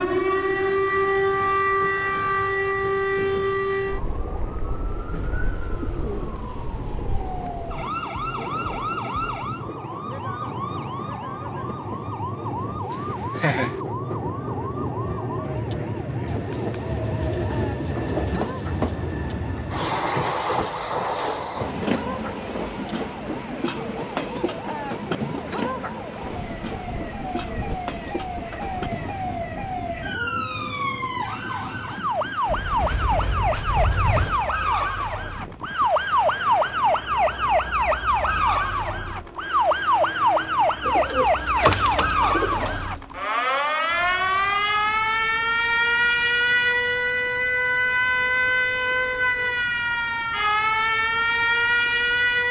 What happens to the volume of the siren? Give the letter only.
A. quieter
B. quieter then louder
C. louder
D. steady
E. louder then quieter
B.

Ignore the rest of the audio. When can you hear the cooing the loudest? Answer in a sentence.
The volume of the cooing peaks at 42 seconds.